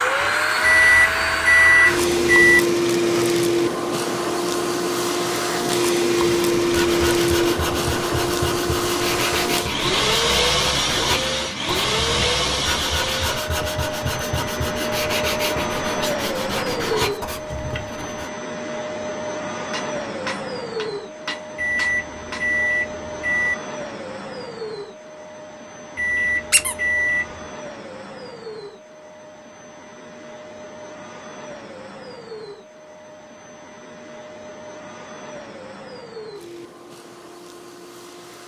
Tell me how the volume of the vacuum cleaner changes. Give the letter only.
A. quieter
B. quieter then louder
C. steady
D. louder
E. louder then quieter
A.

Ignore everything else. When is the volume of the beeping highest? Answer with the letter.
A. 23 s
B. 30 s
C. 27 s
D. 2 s
D.